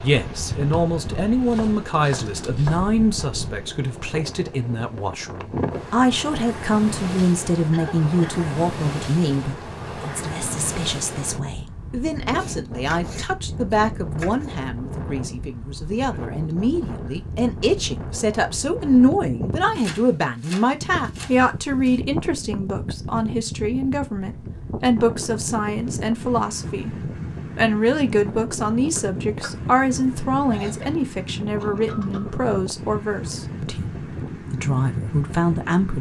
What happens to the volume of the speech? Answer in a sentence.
The loudness of the speech stays about the same.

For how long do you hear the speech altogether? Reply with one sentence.
The speech can be heard for 35 seconds in total.